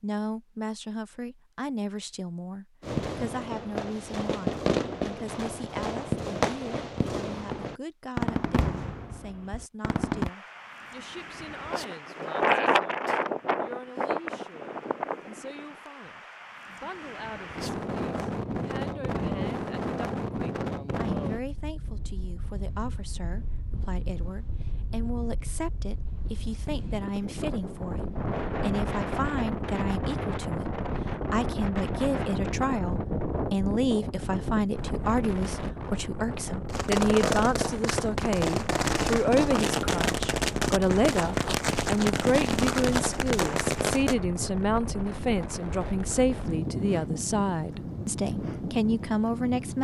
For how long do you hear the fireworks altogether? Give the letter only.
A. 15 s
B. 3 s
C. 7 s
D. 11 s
A.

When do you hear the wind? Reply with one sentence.
The wind can be heard from 10.2 to 49.8 s.